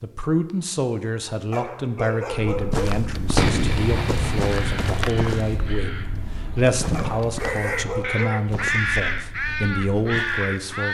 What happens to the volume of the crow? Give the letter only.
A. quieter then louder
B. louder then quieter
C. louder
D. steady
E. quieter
C.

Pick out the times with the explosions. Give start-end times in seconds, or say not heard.
3.4-5.9.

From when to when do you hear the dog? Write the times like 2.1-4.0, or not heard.
1.5-3.0, 6.9-8.5.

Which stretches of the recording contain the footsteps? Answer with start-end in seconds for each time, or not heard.
2.5-10.6.